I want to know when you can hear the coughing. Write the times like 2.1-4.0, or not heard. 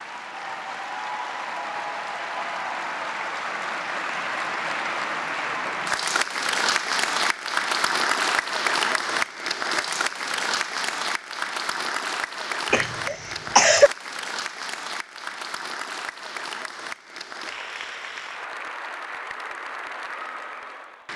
12.7-13.9.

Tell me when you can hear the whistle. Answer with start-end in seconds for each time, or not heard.
not heard.